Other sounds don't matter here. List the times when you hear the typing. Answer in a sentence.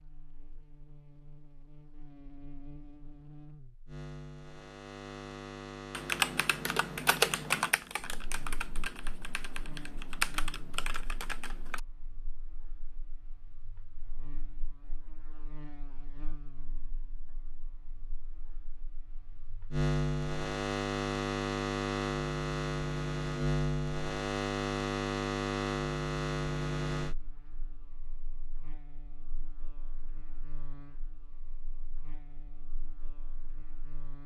The typing can be heard from 5.9 to 11.8 s.